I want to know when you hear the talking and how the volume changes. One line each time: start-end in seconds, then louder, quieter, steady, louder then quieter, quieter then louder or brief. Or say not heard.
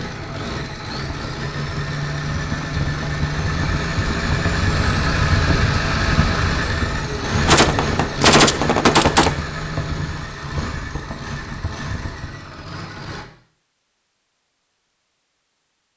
not heard.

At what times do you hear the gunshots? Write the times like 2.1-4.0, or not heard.
7.5-9.3.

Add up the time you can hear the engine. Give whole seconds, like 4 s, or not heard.
13 s.